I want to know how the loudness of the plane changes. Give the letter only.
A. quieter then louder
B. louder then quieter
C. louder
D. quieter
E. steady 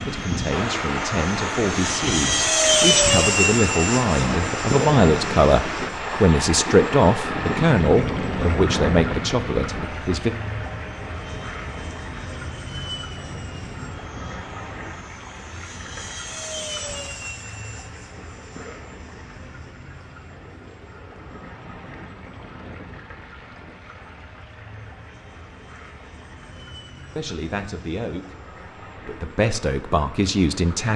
D.